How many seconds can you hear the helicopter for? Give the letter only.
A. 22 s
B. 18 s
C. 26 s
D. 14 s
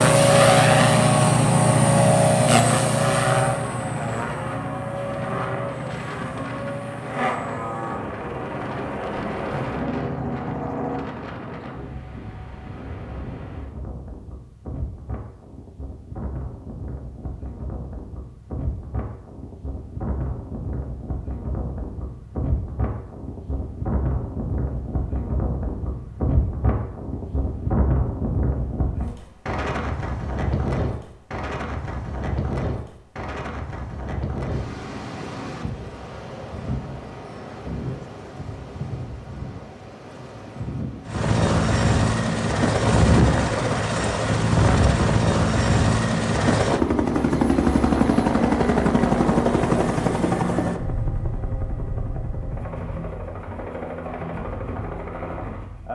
C.